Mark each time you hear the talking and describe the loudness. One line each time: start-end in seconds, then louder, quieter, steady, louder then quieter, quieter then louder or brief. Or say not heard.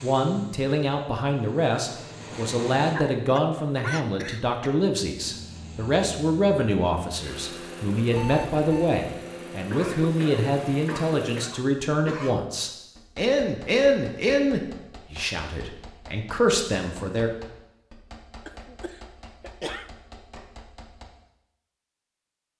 0.0-17.3 steady.